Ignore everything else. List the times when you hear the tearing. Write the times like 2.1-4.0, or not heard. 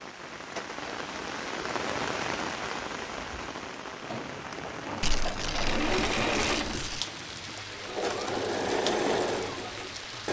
5.0-7.0.